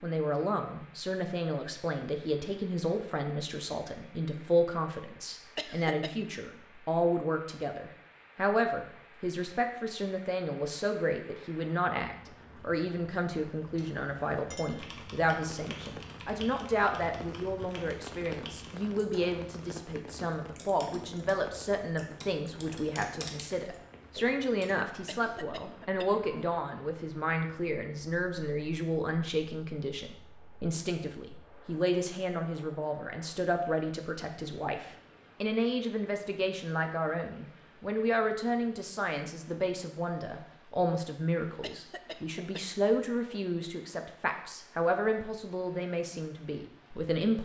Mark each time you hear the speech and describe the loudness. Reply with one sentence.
You can hear the speech from 0.0 to 47.4 s, at a steady volume.